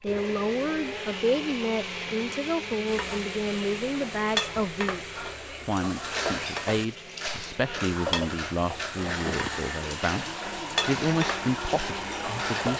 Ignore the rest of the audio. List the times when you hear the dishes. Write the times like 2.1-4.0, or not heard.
5.7-12.7.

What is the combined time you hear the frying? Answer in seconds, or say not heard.
10 s.